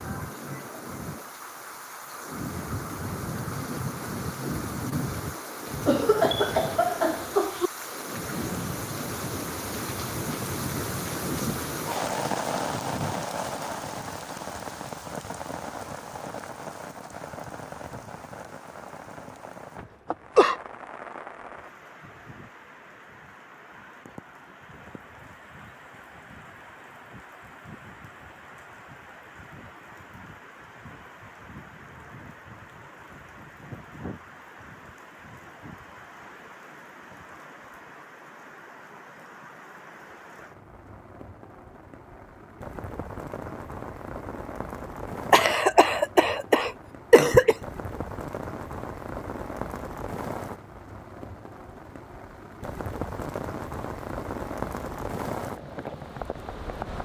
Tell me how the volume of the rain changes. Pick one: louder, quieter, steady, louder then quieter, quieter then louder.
quieter then louder.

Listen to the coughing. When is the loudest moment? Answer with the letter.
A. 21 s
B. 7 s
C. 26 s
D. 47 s
D.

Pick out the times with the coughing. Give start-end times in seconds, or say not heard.
5.8-7.7, 19.8-20.6, 45.3-47.5.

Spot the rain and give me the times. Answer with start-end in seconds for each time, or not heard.
0.0-57.0.